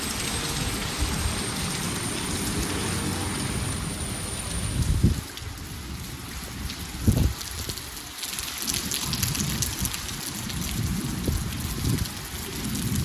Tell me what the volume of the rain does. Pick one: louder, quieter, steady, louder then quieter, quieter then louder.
steady.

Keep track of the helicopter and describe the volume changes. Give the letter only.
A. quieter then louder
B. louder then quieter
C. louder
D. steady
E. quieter
D.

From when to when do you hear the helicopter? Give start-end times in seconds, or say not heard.
0.0-5.1.